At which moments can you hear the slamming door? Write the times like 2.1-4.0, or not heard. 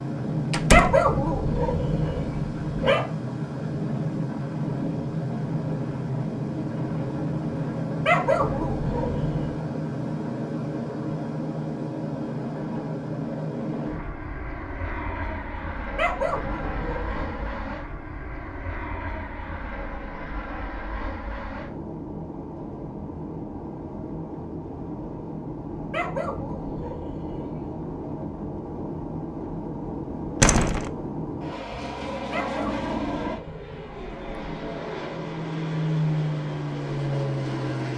0.5-1.1, 30.4-30.9.